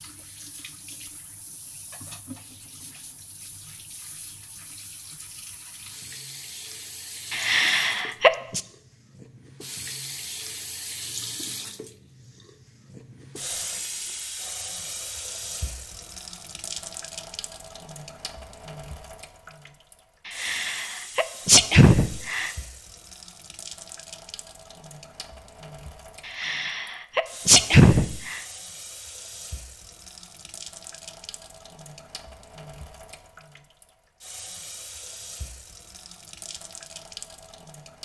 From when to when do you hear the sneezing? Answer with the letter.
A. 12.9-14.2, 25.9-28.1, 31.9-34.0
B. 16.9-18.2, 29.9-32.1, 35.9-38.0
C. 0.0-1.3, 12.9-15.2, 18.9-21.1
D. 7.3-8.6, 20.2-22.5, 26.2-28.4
D.